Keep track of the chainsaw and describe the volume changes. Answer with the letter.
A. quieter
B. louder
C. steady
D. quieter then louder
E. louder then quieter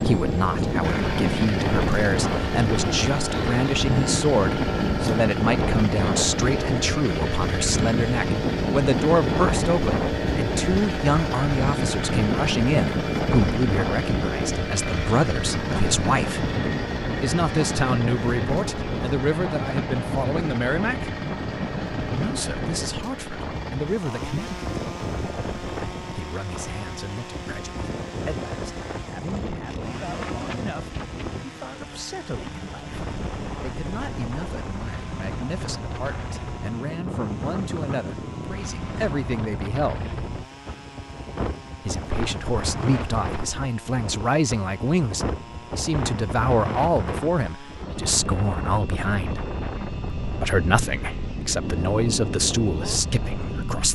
A.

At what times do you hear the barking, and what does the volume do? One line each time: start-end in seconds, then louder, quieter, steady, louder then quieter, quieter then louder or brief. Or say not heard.
not heard.